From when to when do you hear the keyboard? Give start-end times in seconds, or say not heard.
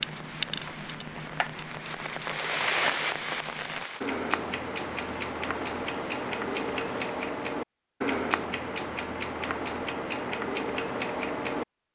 not heard.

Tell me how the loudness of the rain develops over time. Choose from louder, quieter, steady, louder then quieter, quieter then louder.
louder then quieter.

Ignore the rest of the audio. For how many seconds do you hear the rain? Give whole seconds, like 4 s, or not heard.
8 s.